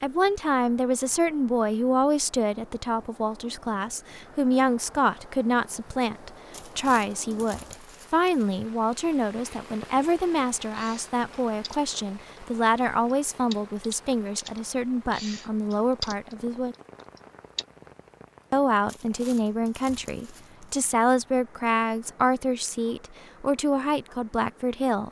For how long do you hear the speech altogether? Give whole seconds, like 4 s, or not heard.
23 s.